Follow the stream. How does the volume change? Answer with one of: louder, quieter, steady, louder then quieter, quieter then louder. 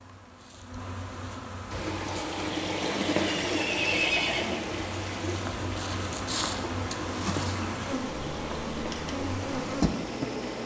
quieter.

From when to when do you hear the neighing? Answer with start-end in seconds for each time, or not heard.
3.4-4.6.